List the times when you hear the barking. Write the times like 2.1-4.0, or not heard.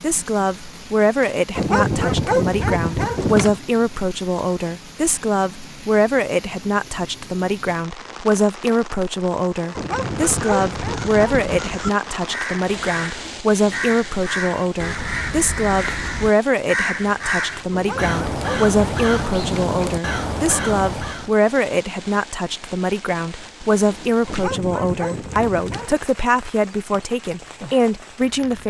1.6-3.6, 9.8-11.5, 17.7-19.9, 24.2-25.9.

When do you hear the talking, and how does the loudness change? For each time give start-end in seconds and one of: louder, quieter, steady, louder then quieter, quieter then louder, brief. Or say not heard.
0.0-28.6 steady.